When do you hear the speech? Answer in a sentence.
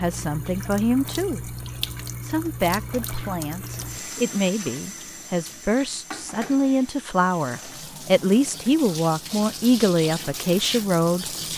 The speech can be heard from 0.0 to 1.6 s and from 2.2 to 11.2 s.